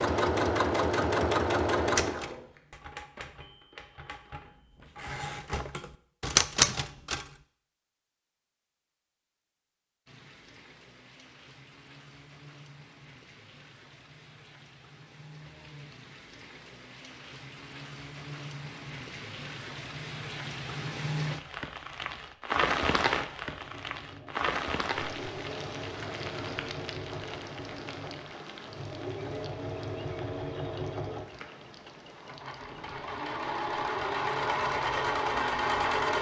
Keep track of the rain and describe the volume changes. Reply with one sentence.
The volume of the rain goes up, then down.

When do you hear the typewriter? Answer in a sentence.
You can hear the typewriter from 1.9 to 7.2 s.